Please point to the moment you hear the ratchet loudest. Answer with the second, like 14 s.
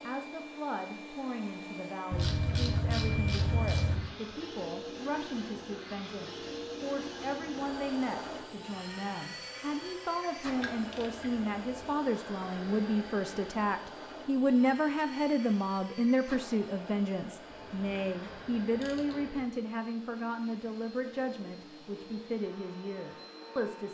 3 s.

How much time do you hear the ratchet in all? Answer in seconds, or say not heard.
5 s.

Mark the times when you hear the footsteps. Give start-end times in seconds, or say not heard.
not heard.